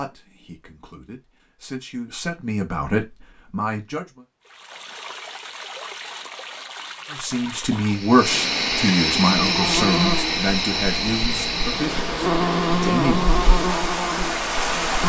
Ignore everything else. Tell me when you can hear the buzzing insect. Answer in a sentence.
You can hear the buzzing insect from 9.2 to 15.0 s.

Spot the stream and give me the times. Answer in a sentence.
The stream can be heard from 4.5 to 15.0 s.